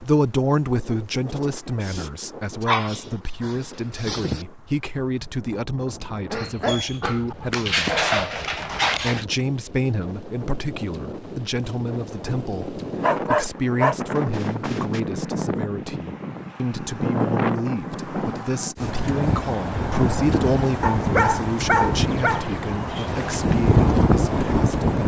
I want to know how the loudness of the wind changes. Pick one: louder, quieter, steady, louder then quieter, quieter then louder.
louder.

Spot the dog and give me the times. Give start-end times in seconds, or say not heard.
2.6-4.5, 6.3-9.2, 13.0-15.0, 20.8-22.4.